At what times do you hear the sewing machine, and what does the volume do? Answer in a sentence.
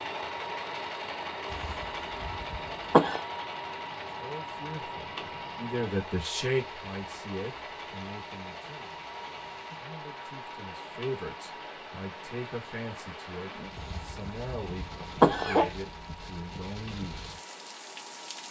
The sewing machine can be heard from 0.0 to 18.4 s, getting quieter.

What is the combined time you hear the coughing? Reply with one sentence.
You can hear the coughing for 4 seconds altogether.